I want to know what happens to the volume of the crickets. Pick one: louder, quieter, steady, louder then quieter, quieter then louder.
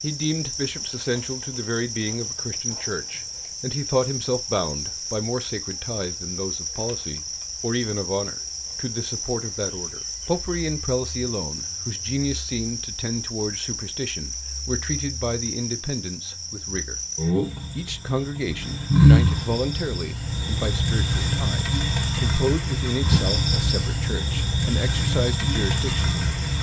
louder.